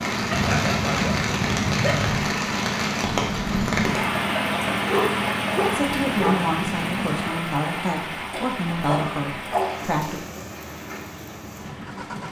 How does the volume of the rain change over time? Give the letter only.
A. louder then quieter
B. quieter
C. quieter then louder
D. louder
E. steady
B.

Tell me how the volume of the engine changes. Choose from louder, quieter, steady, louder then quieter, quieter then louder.
quieter.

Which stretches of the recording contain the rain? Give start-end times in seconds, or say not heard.
0.0-12.2.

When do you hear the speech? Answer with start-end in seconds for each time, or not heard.
5.7-10.2.